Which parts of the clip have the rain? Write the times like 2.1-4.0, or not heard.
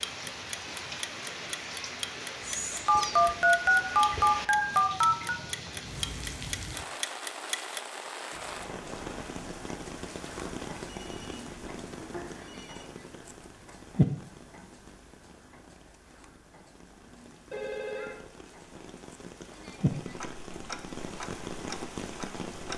0.0-22.7.